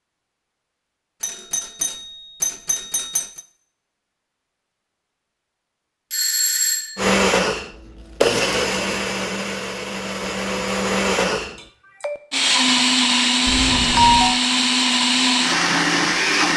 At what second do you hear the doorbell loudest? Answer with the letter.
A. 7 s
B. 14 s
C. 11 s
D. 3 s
B.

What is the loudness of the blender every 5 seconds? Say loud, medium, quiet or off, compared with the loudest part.
off, loud, loud, loud.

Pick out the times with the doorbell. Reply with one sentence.
You can hear the doorbell from 1.2 to 3.4 s, from 6.1 to 7.0 s and from 13.4 to 14.4 s.